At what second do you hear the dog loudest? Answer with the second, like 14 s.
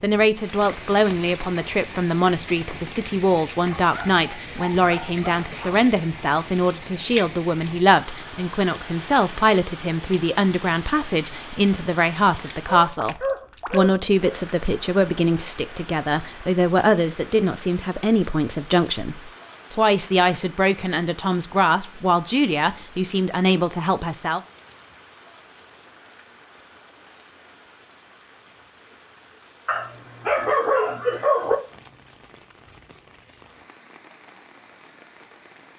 31 s.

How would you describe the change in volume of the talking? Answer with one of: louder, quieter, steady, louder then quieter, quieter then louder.
steady.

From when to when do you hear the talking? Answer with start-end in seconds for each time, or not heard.
0.0-24.4.